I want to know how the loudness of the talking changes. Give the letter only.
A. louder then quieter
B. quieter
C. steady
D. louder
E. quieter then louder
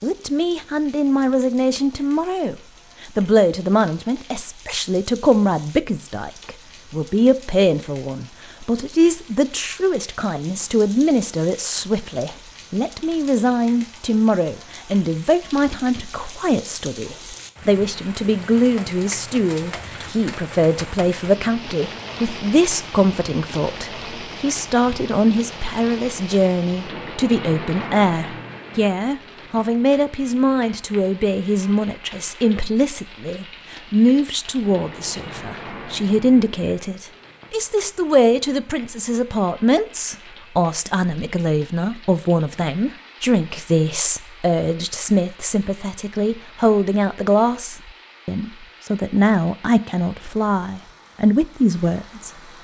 C.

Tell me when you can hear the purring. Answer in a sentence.
You can't hear the purring here.